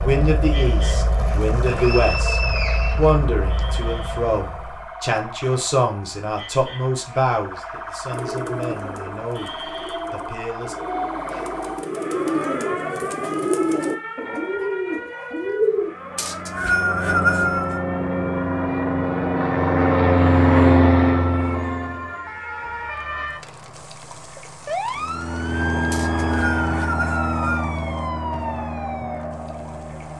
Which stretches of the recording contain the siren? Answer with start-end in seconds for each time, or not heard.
0.0-30.1.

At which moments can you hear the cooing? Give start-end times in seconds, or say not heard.
8.1-15.9.